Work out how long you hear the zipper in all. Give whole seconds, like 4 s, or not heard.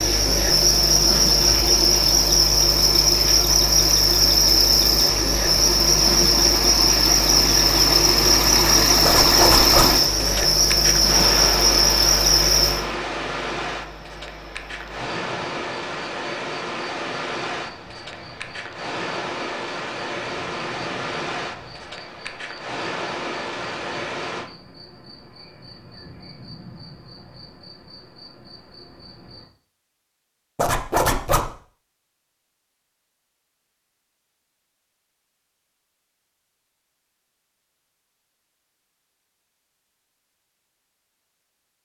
2 s.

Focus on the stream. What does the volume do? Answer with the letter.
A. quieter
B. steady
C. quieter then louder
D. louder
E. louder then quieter
E.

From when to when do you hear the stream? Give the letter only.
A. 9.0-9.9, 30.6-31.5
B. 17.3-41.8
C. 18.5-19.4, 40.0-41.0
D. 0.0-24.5
D.